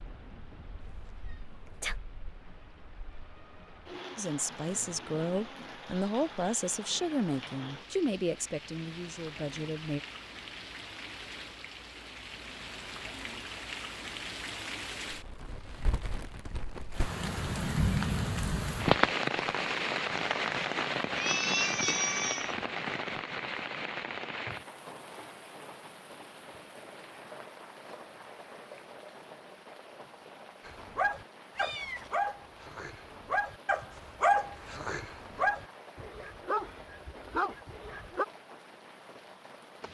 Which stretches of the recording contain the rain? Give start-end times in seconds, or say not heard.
0.0-39.8.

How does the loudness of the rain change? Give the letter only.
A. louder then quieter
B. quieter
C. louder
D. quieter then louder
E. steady
A.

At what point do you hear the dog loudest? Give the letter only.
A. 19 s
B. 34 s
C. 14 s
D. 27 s
B.